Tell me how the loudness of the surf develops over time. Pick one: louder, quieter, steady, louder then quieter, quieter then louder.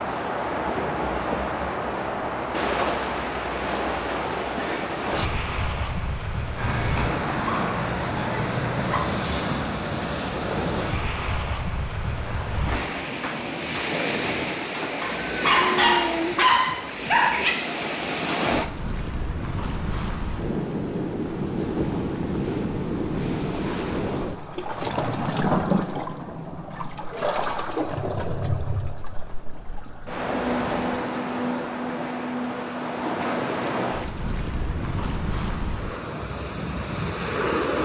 steady.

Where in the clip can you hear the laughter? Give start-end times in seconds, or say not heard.
not heard.